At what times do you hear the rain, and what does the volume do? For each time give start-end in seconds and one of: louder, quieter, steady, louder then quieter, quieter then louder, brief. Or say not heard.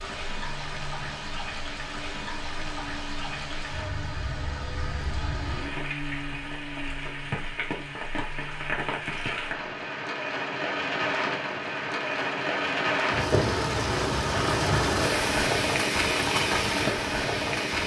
0.0-17.8 louder.